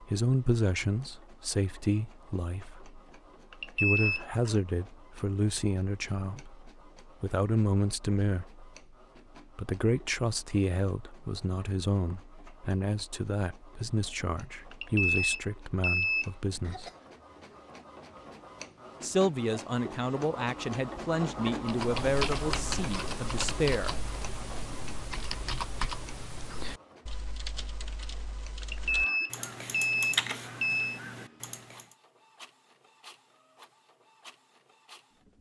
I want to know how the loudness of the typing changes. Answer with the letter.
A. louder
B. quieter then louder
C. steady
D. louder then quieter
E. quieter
B.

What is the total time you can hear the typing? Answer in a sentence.
You can hear the typing for 10 seconds altogether.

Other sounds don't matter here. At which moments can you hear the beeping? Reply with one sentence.
You can hear the beeping from 3.5 to 4.2 s, from 14.7 to 16.3 s and from 28.6 to 31.0 s.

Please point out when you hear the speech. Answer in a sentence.
The speech can be heard from 0.0 to 8.7 s, from 9.6 to 16.9 s and from 19.0 to 23.9 s.